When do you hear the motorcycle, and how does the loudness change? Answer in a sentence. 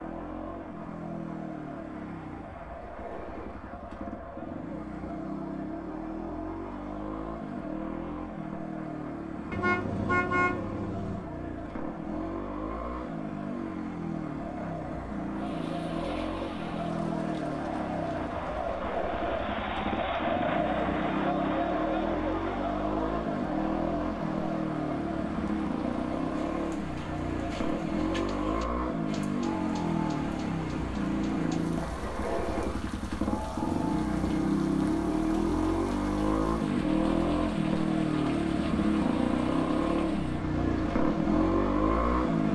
You can hear the motorcycle from 0.0 to 42.5 s, getting louder.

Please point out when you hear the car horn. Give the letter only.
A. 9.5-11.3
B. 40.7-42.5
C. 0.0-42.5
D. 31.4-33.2
A.